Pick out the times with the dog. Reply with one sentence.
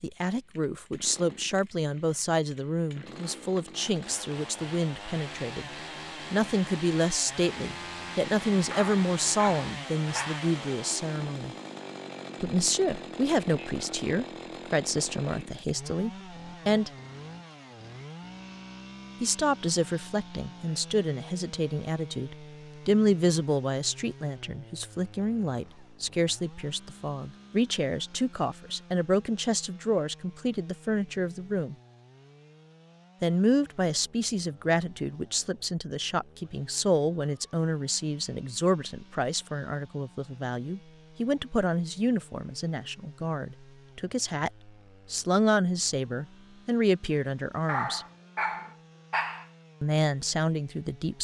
The dog can be heard from 8.7 to 10.4 s and from 47.6 to 49.5 s.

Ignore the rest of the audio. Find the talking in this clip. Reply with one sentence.
The talking can be heard from 0.0 to 5.7 s, from 6.3 to 11.6 s, from 12.4 to 16.9 s, from 19.2 to 31.8 s, from 33.2 to 48.0 s and from 49.8 to 51.1 s.